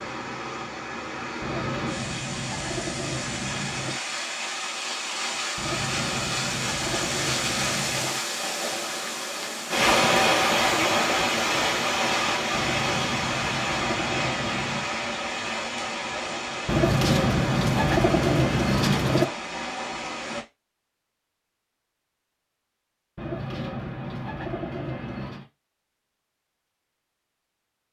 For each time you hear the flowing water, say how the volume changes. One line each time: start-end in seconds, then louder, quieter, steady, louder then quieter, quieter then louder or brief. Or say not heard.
0.0-20.4 louder then quieter.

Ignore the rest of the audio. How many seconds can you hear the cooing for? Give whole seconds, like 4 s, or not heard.
13 s.